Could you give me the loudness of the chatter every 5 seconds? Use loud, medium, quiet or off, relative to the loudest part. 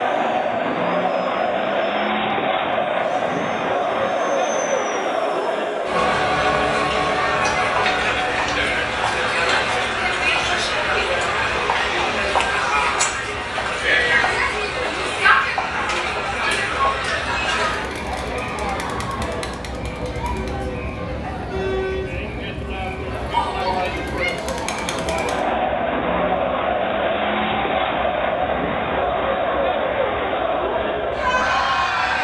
loud, loud, loud, loud, medium, loud, loud.